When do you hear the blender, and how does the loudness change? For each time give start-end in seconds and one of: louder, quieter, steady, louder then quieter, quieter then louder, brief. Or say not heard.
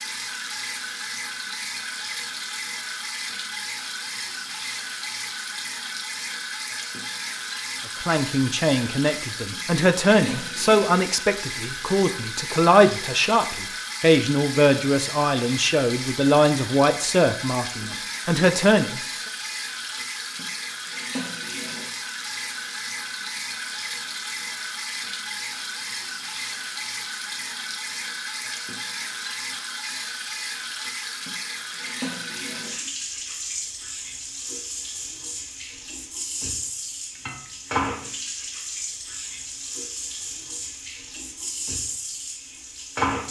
not heard.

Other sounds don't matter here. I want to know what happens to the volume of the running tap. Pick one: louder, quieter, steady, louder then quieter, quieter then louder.
steady.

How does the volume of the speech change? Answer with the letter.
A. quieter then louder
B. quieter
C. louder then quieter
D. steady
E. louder
D.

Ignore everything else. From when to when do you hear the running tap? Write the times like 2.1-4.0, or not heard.
0.0-43.2.